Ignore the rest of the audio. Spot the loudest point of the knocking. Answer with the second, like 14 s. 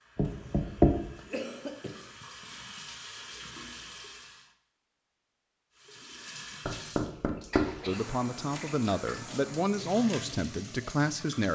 1 s.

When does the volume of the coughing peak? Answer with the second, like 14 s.
2 s.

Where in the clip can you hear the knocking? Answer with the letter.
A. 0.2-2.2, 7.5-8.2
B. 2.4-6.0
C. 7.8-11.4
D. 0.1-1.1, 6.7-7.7
D.